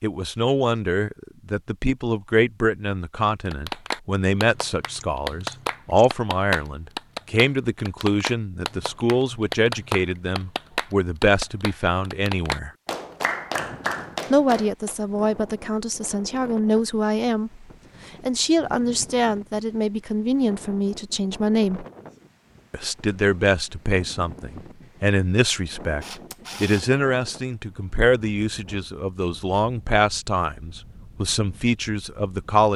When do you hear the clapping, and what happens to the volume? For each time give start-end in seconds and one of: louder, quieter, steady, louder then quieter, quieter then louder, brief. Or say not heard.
3.5-14.9 steady.